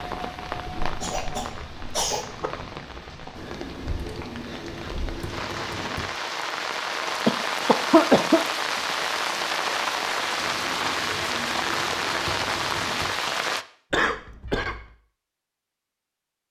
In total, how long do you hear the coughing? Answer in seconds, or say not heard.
4 s.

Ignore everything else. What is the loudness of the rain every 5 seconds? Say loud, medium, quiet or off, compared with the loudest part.
medium, loud, loud, off.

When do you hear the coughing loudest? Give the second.
8 s.